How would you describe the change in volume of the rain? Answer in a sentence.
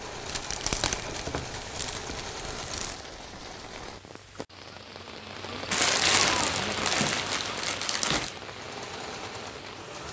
The volume of the rain goes up, then down.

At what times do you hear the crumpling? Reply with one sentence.
The crumpling can be heard from 0.2 to 3.0 s and from 5.7 to 8.4 s.